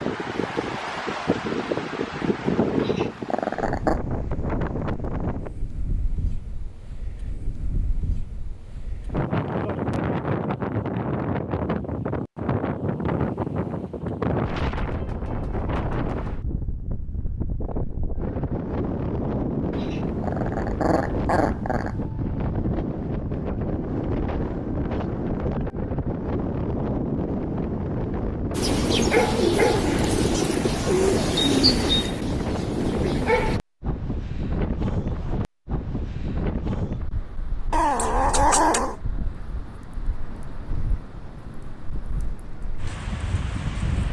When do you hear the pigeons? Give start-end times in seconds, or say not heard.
28.5-33.6.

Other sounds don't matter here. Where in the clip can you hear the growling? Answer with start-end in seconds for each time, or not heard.
2.8-4.0, 19.7-21.9, 37.7-39.0.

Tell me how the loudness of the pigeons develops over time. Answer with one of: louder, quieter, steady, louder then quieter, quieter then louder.
quieter.